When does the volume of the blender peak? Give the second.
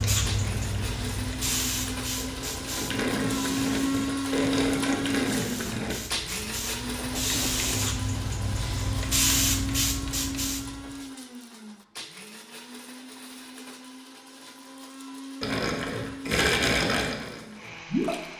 4 s.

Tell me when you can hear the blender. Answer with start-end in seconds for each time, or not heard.
0.1-18.3.